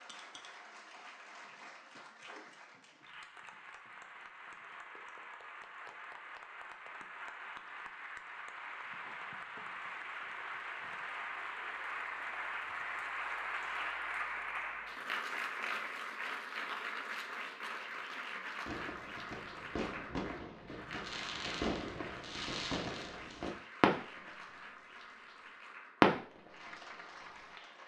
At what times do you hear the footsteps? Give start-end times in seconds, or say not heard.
not heard.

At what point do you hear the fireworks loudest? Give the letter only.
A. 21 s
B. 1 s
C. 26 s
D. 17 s
C.